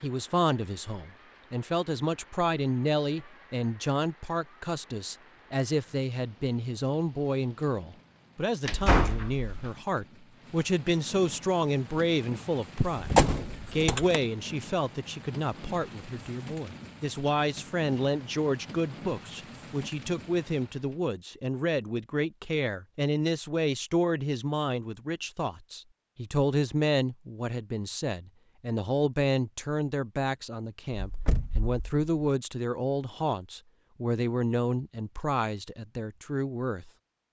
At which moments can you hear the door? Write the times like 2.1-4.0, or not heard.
8.7-9.8, 12.8-14.2, 30.9-32.0.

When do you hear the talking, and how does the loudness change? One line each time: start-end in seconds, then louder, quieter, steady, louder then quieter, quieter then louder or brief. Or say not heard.
0.0-36.9 steady.